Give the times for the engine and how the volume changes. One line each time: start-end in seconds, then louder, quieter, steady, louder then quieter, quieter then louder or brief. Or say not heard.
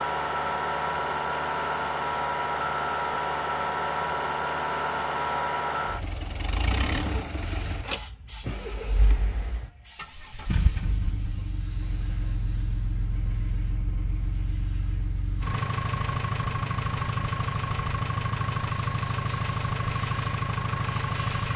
0.0-21.5 quieter then louder.